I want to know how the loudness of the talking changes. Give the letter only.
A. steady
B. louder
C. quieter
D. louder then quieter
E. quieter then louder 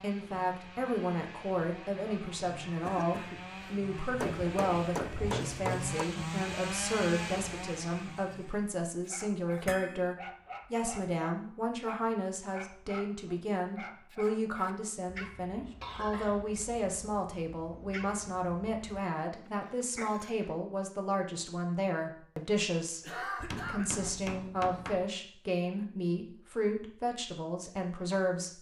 A.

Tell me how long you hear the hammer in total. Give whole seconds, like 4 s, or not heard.
4 s.